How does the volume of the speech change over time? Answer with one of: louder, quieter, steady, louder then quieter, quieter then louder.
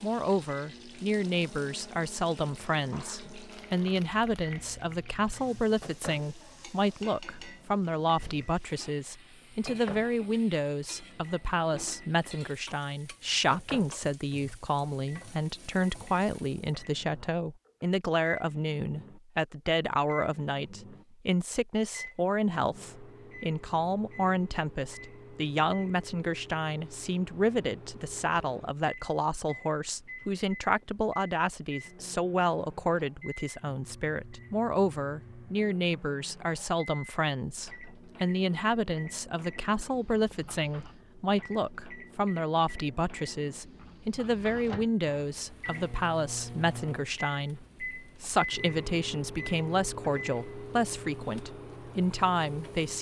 steady.